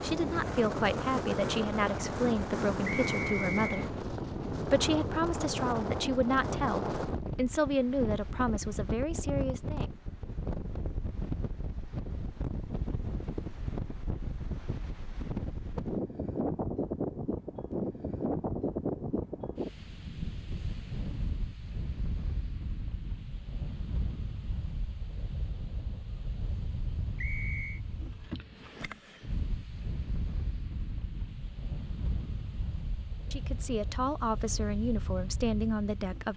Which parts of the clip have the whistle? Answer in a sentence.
The whistle can be heard from 2.9 to 3.8 s and from 27.1 to 27.8 s.